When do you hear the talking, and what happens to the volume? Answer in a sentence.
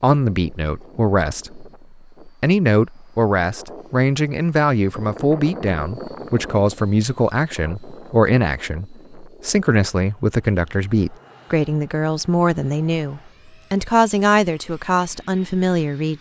The talking can be heard from 0.0 to 16.1 s, at a steady volume.